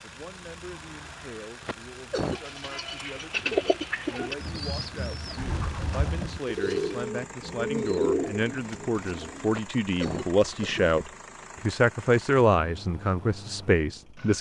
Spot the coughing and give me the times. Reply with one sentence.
You can hear the coughing from 1.6 to 2.4 s and from 9.4 to 10.9 s.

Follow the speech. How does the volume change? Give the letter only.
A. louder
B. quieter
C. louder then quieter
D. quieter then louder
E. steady
A.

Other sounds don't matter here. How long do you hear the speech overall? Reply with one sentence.
The speech can be heard for 14 seconds in total.